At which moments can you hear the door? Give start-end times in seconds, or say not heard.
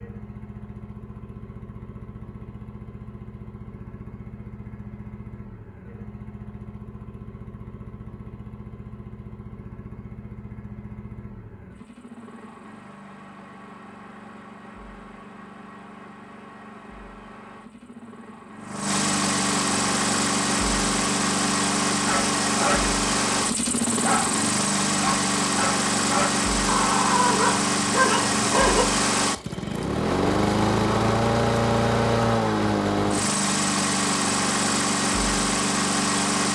not heard.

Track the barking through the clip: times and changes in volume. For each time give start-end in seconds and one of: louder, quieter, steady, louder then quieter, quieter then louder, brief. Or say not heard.
22.1-22.9 brief
23.9-28.9 louder.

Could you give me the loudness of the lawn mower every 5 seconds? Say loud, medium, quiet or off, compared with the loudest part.
quiet, quiet, quiet, medium, loud, loud, loud, loud.